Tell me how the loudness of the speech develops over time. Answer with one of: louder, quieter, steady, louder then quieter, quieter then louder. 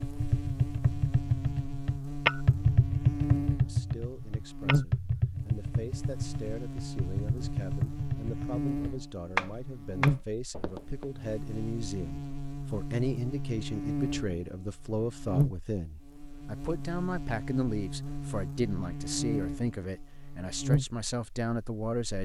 louder.